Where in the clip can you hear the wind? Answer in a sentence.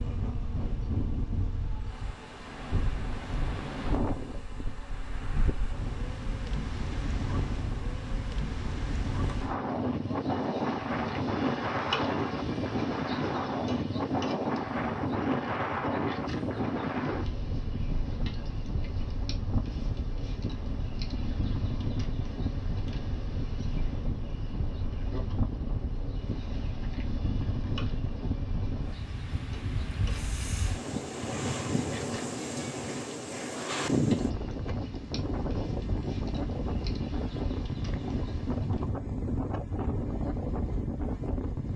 You can hear the wind from 0.0 to 41.7 s.